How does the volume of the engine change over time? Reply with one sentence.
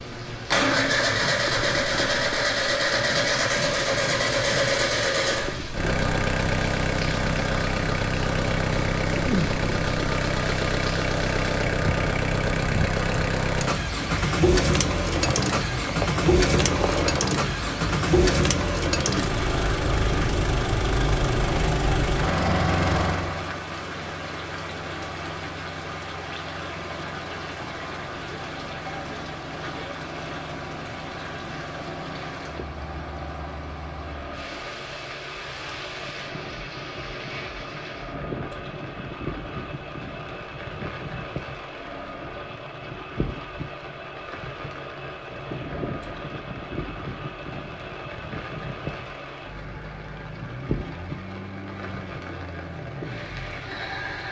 The loudness of the engine goes down.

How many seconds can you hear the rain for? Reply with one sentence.
You can hear the rain for 54 seconds altogether.